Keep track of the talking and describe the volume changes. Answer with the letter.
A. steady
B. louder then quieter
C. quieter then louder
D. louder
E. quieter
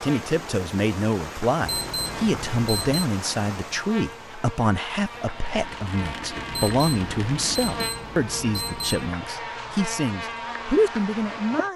A.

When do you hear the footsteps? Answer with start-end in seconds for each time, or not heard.
not heard.